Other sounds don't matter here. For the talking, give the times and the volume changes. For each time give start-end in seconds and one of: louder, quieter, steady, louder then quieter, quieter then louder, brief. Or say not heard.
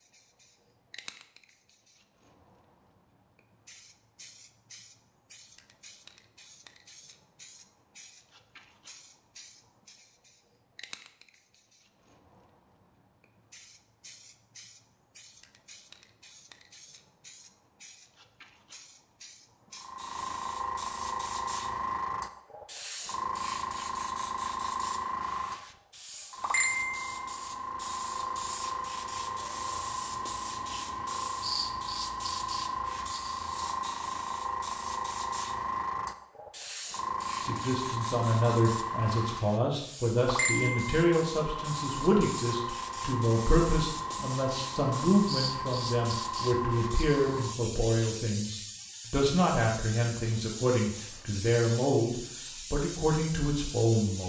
37.4-54.2 steady.